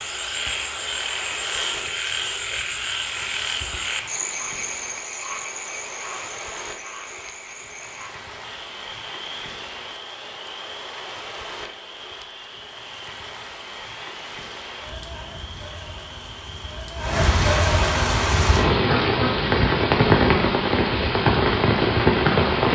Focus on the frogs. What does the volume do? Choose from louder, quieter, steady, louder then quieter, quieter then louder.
quieter.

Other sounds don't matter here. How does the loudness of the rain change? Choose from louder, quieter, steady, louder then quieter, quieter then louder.
louder.